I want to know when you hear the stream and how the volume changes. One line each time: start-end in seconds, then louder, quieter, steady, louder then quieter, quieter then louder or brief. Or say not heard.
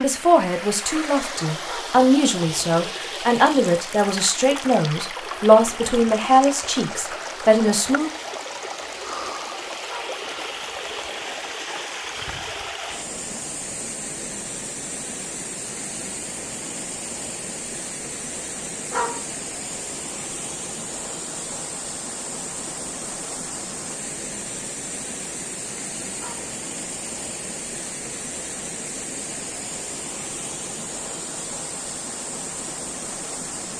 0.0-33.7 steady.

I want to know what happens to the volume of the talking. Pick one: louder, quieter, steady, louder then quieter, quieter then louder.
louder.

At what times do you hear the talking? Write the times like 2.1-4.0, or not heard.
0.0-8.1.